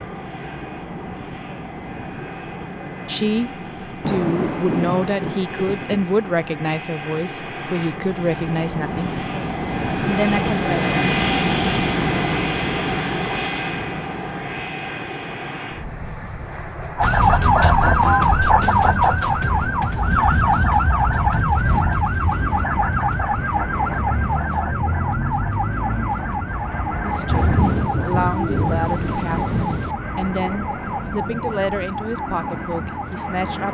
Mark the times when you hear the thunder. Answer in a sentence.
You can hear the thunder from 4.0 to 6.0 s and from 27.2 to 29.9 s.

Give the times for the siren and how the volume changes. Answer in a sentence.
The siren can be heard from 16.9 to 33.6 s, getting quieter.